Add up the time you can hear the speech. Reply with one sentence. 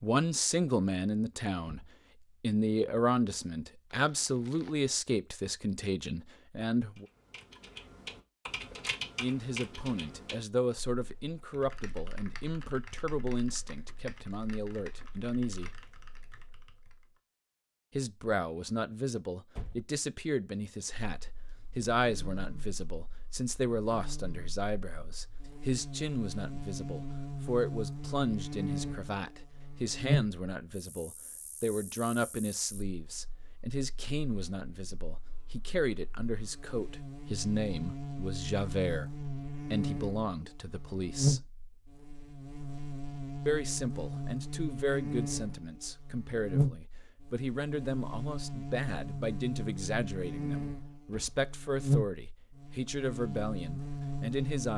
You can hear the speech for 48 seconds altogether.